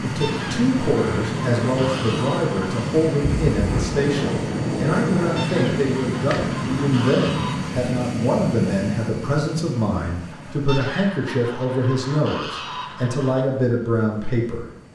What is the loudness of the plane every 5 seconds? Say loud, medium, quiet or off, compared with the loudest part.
loud, loud, quiet.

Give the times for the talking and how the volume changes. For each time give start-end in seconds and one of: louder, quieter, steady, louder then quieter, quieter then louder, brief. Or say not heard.
0.0-14.7 steady.